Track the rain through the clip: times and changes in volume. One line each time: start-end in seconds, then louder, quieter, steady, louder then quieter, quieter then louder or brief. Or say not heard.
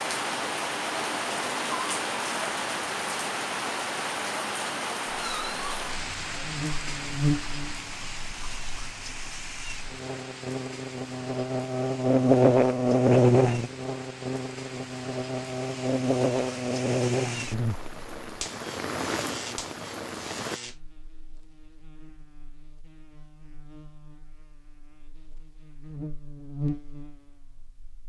0.0-20.6 quieter then louder.